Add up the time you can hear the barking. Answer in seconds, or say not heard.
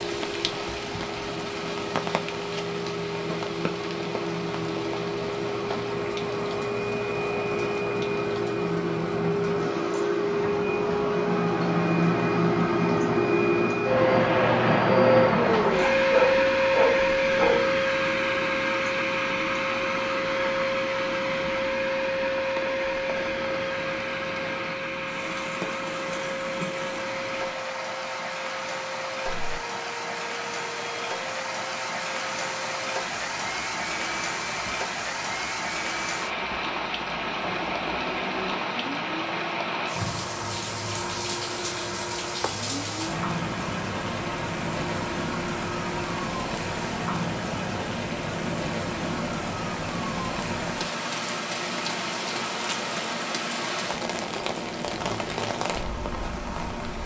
2 s.